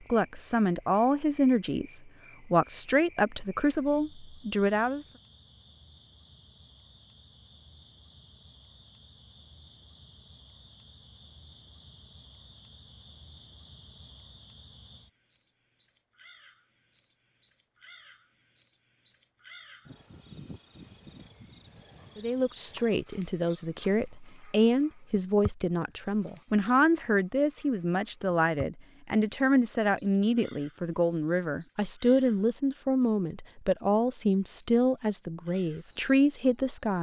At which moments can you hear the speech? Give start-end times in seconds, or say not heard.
0.1-5.0, 22.1-36.9.